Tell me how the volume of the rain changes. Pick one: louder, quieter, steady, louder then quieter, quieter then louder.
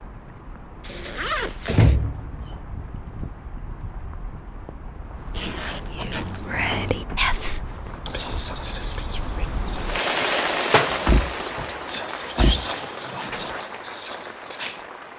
louder then quieter.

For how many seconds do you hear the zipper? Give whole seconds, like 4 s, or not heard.
3 s.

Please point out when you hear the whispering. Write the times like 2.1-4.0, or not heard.
5.9-14.8.